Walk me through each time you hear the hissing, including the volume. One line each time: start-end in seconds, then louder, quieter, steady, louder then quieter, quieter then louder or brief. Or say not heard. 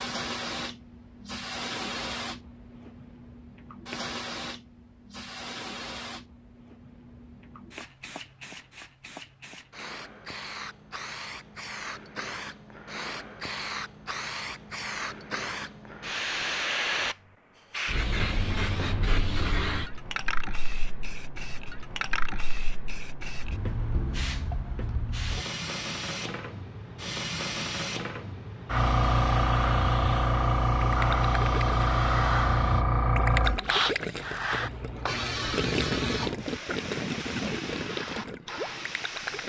0.0-39.4 louder.